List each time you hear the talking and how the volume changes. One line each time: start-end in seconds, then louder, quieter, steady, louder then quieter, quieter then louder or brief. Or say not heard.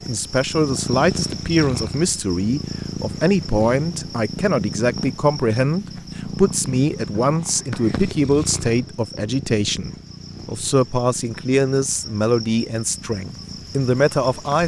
0.1-14.6 steady.